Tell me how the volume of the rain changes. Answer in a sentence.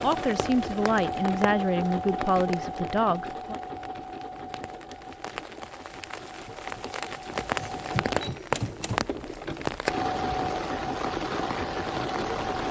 The volume of the rain goes down, then up.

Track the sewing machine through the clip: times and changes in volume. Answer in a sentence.
You can hear the sewing machine from 0.0 to 12.6 s, getting quieter then louder.